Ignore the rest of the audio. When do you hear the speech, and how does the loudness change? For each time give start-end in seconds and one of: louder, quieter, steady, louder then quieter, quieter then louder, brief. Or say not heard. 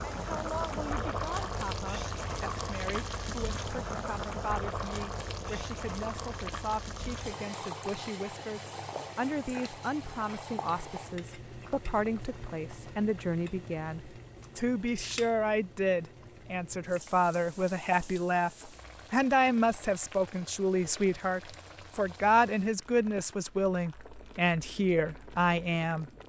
0.0-26.2 louder.